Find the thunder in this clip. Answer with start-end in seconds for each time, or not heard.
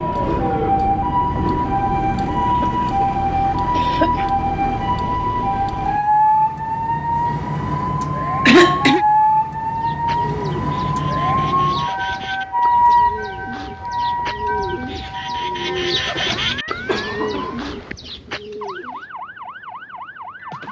not heard.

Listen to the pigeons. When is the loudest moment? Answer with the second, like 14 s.
16 s.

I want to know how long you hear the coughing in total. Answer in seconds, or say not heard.
3 s.